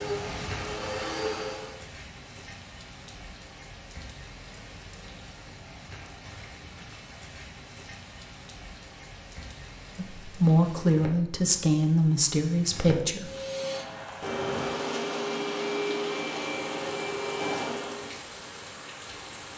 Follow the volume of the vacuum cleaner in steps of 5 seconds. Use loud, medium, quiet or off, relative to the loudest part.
loud, off, loud, loud.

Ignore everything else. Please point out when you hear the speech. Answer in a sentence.
You can hear the speech from 9.9 to 13.3 s.